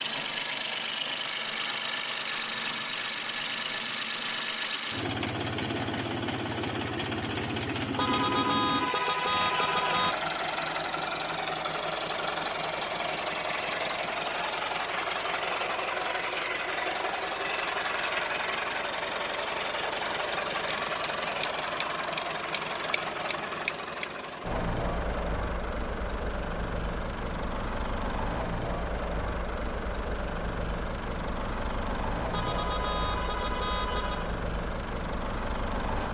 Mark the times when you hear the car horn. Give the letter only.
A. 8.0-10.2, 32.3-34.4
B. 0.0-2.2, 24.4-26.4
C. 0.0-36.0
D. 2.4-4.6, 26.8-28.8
A.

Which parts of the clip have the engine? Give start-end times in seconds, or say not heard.
0.0-36.0.